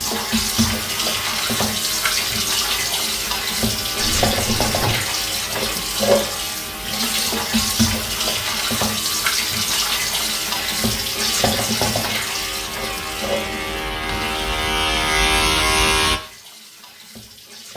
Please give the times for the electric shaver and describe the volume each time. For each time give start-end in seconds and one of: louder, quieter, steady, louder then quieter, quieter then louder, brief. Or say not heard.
0.0-16.2 louder.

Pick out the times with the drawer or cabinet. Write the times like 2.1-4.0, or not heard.
4.0-5.0, 13.4-14.2.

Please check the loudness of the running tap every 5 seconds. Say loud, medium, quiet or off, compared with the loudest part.
loud, loud, loud, quiet.